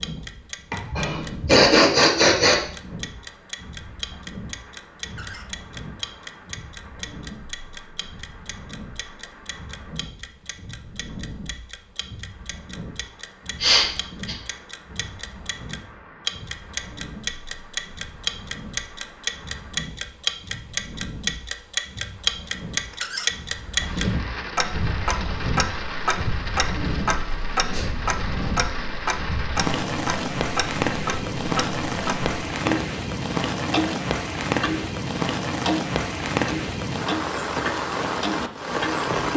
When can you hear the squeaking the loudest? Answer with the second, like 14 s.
23 s.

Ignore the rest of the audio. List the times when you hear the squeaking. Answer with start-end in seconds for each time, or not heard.
5.1-5.5, 22.9-23.3.